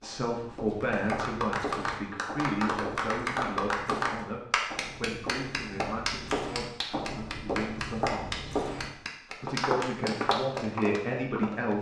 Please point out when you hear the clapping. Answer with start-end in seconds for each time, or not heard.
0.8-10.8.